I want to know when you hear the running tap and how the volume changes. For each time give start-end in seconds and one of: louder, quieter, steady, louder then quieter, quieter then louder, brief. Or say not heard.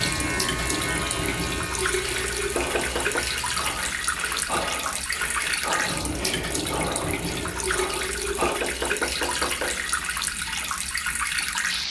0.0-11.8 steady.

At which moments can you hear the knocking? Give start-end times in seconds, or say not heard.
2.5-3.3, 8.4-9.8.